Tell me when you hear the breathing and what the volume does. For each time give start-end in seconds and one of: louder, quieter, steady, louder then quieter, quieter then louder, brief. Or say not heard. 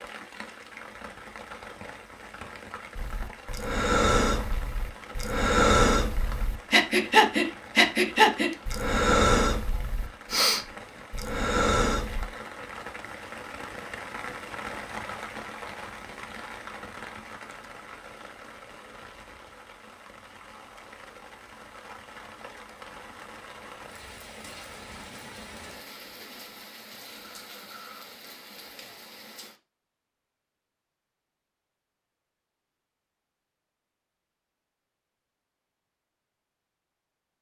3.0-12.3 louder then quieter.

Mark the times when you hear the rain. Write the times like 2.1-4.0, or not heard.
0.0-29.6.